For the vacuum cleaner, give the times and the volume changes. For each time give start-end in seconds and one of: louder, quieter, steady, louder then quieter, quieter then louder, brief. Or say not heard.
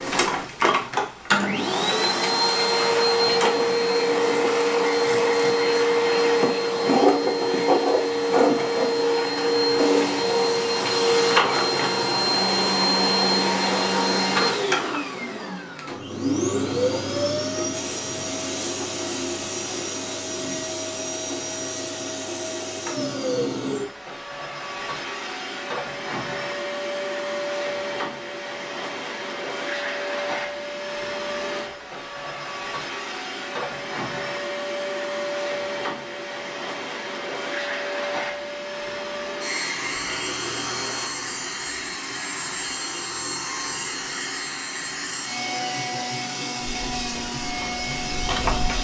0.0-48.7 quieter.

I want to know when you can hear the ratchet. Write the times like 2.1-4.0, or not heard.
46.5-48.7.